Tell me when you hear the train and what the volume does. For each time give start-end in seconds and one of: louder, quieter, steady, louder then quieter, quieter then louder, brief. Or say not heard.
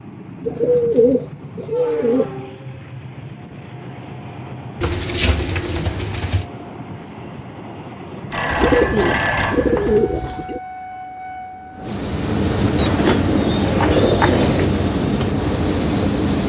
0.0-16.4 louder.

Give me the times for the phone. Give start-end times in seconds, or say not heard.
8.3-10.0.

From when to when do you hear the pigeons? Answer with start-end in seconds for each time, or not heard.
0.5-2.3, 4.8-6.5, 8.5-10.6, 12.8-14.7.